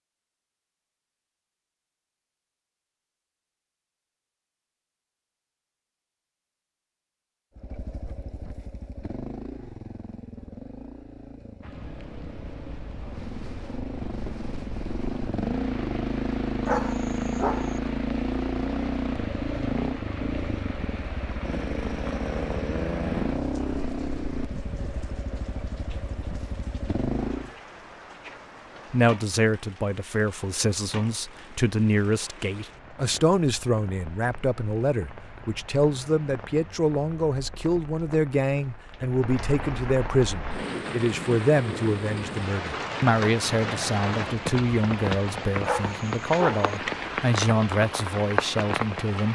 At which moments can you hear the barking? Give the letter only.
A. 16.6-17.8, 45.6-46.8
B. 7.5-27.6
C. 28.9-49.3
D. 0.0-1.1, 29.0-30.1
A.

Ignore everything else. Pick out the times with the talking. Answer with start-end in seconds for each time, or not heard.
28.9-49.3.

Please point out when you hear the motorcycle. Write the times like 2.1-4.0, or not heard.
7.5-27.6.